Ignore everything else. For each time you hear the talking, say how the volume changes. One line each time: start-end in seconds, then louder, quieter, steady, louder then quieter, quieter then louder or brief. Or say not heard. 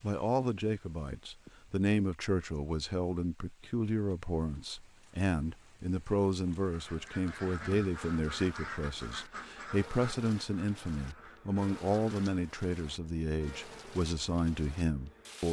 0.0-15.4 steady.